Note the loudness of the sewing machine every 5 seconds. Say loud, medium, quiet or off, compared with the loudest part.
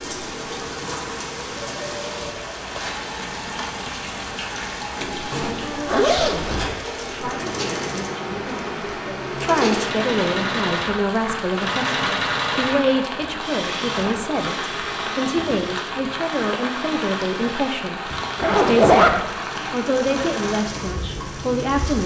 medium, loud, loud, medium, medium.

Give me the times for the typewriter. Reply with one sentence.
You can't hear the typewriter here.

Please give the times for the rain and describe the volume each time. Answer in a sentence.
The rain can be heard from 0.0 to 22.0 s, at a steady volume.